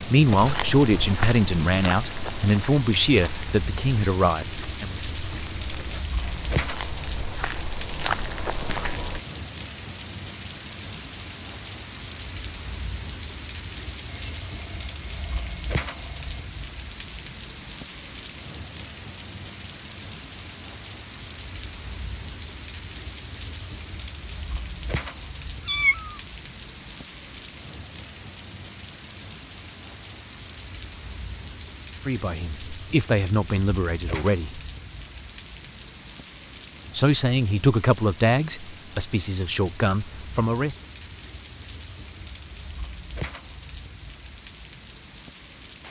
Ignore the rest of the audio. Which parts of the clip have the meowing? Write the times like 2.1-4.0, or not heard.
25.6-26.2.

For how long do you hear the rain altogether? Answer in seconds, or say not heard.
46 s.